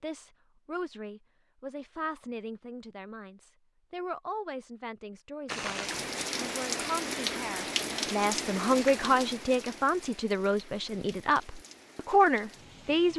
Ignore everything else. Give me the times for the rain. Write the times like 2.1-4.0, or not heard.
5.5-13.1.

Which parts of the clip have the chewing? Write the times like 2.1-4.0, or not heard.
not heard.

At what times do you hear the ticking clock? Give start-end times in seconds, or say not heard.
not heard.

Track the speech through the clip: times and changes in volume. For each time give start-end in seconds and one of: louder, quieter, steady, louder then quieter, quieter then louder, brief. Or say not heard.
0.0-13.1 louder.